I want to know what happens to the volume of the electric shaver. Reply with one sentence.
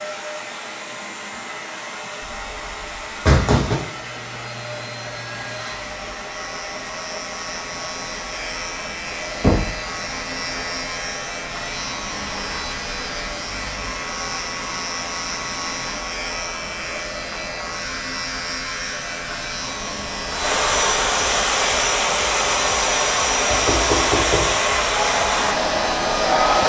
The loudness of the electric shaver goes up.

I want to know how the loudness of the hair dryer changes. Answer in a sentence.
The loudness of the hair dryer goes up.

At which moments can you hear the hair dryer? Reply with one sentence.
You can hear the hair dryer from 0.0 to 26.6 s.